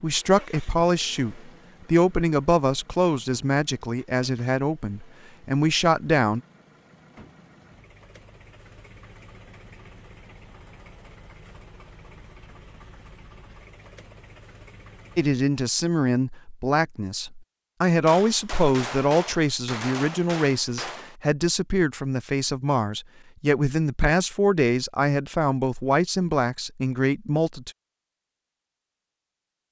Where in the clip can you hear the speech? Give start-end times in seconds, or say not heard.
0.0-6.4, 15.2-27.7.